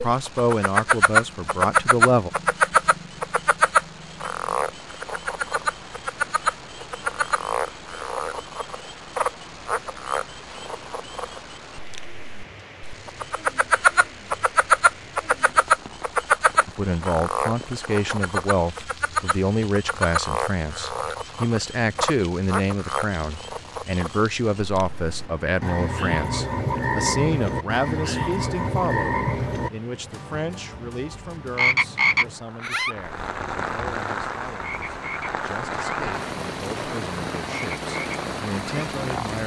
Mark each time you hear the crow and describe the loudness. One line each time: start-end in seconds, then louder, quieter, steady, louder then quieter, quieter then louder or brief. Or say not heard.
not heard.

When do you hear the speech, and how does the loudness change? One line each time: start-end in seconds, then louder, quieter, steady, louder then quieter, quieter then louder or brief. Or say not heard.
0.0-2.3 brief
16.6-39.4 quieter.